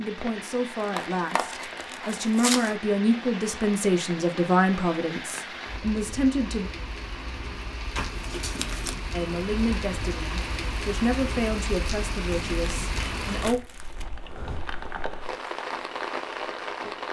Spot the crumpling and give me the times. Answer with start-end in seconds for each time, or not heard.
0.8-2.8, 8.0-8.9, 12.3-14.1.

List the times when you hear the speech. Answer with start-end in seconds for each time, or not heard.
0.0-6.7, 9.1-13.6.